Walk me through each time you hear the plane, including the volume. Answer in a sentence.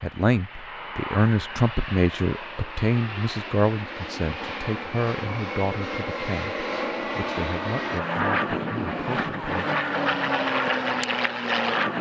The plane can be heard from 0.0 to 11.9 s, getting louder.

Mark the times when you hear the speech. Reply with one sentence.
The speech can be heard from 0.0 to 9.7 s.